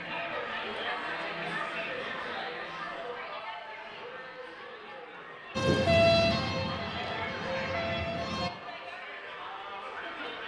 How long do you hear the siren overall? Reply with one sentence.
You can hear the siren for 3 seconds altogether.